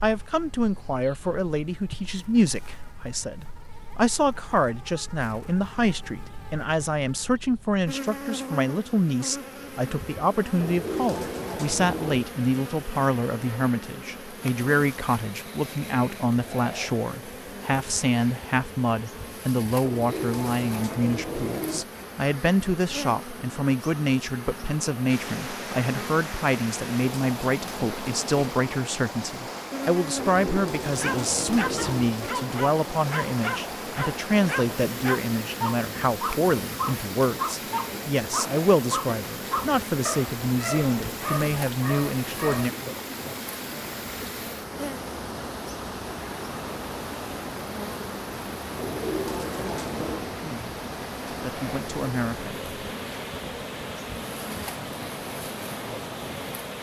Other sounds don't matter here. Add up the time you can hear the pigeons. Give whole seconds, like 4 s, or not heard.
7 s.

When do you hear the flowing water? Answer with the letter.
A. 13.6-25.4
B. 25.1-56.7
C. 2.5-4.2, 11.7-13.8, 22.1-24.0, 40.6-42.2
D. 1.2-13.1
B.